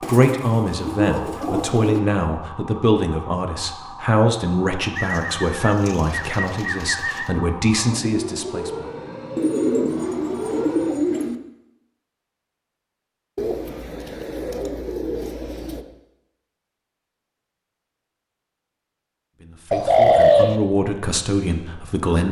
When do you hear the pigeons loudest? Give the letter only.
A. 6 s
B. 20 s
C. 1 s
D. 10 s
B.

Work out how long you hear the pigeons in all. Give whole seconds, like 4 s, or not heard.
10 s.